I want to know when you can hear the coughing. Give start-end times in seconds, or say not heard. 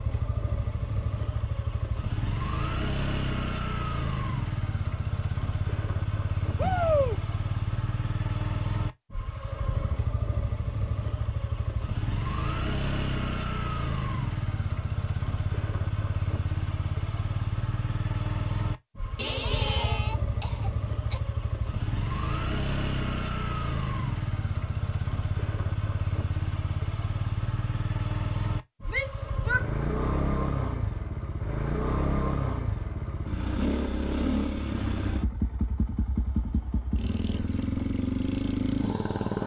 19.1-21.2.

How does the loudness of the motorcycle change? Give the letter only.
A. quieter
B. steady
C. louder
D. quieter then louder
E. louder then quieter
B.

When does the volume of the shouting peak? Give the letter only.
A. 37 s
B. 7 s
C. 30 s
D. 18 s
B.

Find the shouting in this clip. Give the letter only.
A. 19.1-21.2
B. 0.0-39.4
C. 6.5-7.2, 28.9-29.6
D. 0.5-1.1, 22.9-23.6
C.